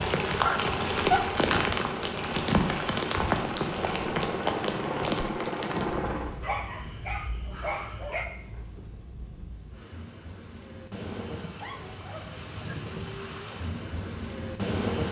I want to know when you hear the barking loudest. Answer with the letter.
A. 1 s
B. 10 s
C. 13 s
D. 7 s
A.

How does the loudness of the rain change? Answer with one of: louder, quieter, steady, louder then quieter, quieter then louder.
quieter then louder.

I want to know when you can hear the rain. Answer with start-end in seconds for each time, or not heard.
0.0-15.0.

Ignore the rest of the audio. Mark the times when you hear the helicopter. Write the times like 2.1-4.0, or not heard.
0.0-6.3.